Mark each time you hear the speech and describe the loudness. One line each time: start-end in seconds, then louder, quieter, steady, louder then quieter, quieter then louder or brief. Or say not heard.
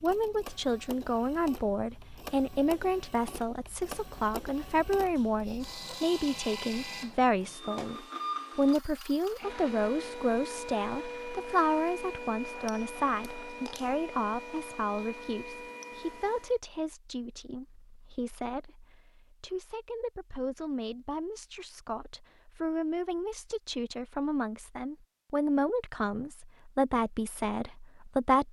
0.0-28.4 quieter then louder.